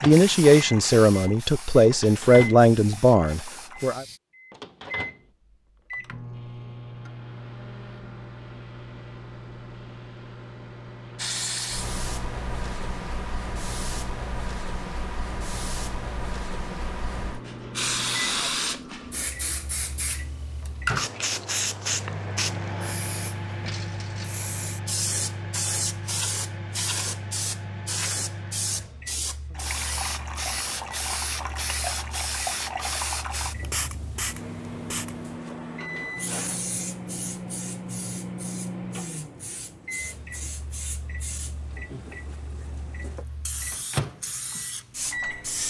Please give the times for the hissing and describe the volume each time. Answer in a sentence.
You can hear the hissing from 0.0 to 4.2 s, getting quieter; and from 11.2 to 45.6 s, getting quieter.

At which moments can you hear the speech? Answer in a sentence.
You can hear the speech from 0.0 to 4.0 s.